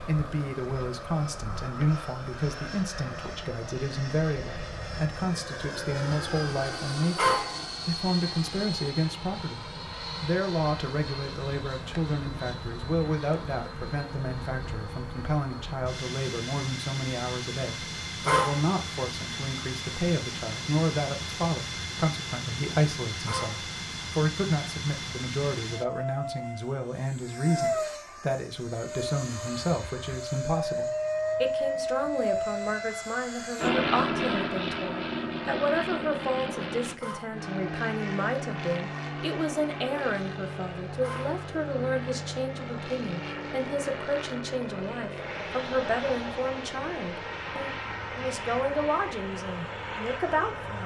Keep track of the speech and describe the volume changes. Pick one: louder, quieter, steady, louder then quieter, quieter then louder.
steady.